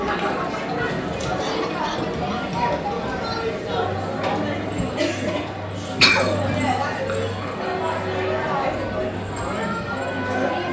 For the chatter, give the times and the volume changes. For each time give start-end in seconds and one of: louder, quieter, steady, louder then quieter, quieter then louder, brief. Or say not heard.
0.0-10.6 steady.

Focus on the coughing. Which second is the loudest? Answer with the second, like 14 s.
6 s.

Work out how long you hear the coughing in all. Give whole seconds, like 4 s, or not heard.
2 s.